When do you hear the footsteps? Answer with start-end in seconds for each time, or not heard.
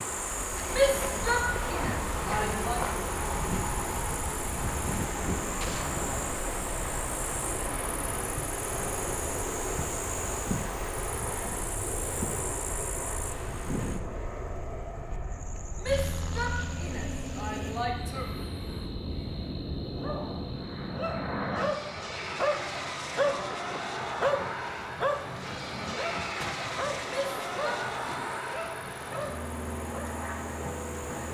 not heard.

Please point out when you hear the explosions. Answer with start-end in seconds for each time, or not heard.
5.6-6.0, 26.4-26.9.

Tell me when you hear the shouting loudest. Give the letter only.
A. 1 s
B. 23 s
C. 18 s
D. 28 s
A.